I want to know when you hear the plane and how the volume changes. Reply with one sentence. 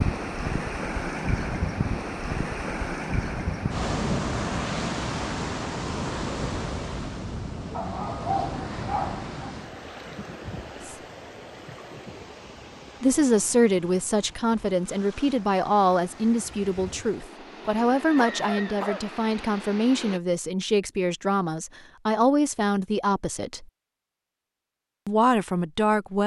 You can't hear the plane here.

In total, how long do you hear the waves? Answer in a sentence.
You can hear the waves for 20 seconds altogether.